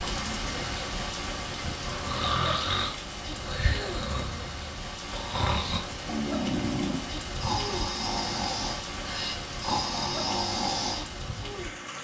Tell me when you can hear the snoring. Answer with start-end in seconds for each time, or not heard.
1.6-11.1.